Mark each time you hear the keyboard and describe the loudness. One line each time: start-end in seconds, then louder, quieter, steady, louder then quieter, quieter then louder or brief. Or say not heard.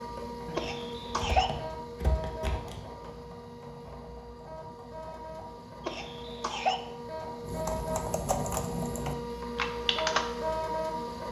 0.1-10.6 louder.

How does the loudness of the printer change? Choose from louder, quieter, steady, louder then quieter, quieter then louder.
quieter then louder.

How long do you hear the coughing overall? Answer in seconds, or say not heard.
2 s.